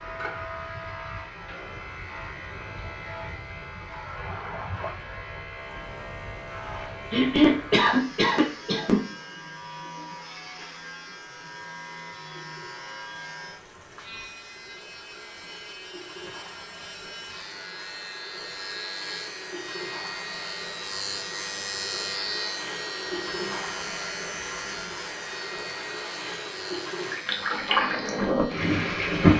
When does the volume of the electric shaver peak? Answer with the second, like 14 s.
22 s.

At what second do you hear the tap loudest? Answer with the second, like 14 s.
29 s.